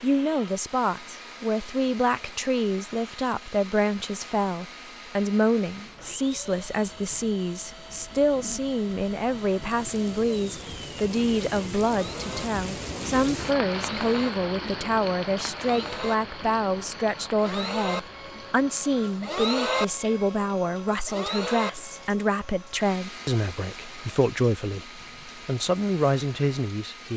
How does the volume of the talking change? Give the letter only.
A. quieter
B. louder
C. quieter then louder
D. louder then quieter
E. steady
E.